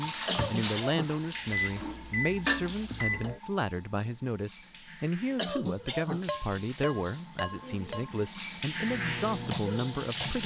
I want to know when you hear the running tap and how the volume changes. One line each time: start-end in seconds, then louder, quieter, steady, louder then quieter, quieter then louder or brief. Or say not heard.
0.0-10.4 quieter then louder.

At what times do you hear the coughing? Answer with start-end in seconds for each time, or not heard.
0.2-1.1, 5.3-6.2.